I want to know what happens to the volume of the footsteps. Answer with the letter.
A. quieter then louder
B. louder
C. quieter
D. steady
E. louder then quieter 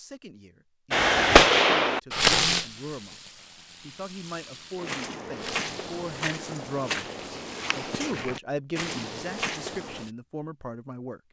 D.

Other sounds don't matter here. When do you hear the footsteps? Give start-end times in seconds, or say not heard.
4.8-10.1.